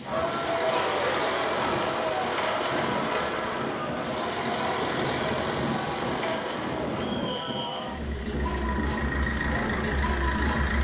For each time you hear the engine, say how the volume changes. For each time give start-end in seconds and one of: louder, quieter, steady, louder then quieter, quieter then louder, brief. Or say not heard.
0.1-10.7 quieter then louder.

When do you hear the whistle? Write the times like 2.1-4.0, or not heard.
7.2-7.9.